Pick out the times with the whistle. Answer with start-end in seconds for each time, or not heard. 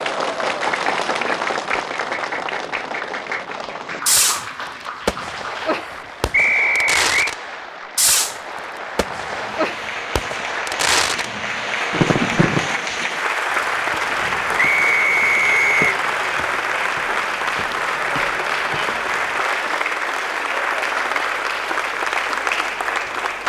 6.3-7.3, 14.6-15.9.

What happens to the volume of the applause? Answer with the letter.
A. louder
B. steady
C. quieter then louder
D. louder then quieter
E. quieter
C.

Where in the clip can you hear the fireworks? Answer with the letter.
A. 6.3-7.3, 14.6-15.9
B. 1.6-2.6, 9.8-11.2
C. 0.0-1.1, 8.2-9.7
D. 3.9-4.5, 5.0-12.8
D.